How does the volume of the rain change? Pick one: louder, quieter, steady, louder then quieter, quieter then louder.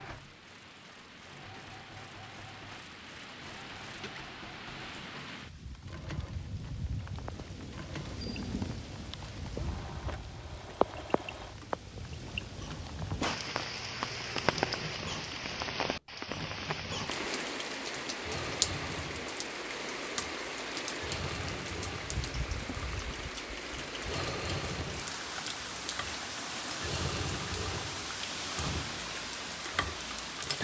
louder.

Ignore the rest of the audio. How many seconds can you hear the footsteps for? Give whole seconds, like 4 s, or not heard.
not heard.